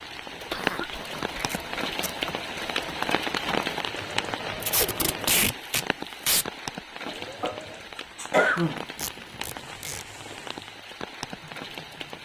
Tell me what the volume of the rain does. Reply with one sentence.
The volume of the rain goes down.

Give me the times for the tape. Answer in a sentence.
You can hear the tape from 1.4 to 2.1 s, from 4.6 to 6.5 s and from 8.9 to 10.1 s.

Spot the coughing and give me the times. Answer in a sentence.
The coughing can be heard from 0.5 to 1.6 s and from 7.0 to 8.8 s.